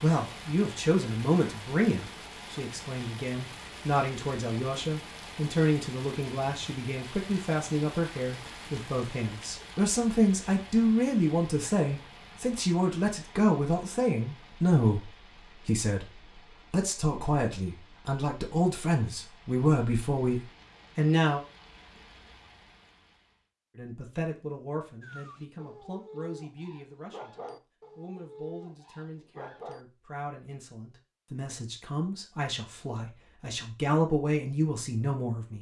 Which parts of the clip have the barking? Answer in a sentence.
The barking can be heard from 25.0 to 29.9 s.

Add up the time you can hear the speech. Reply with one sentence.
You can hear the speech for 33 seconds altogether.